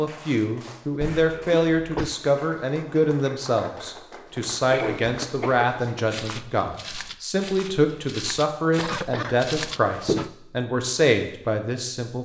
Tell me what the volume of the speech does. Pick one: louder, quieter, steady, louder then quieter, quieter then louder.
steady.